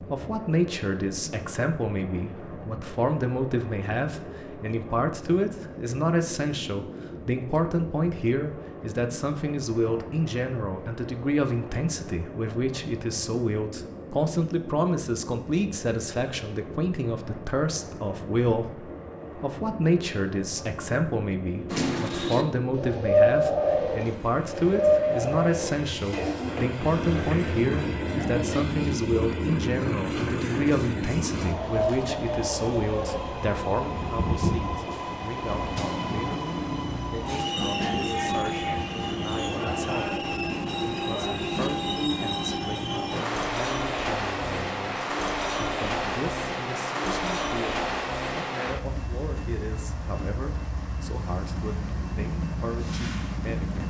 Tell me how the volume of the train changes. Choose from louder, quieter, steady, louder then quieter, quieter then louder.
louder.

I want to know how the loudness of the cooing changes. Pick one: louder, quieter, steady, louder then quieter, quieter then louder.
quieter.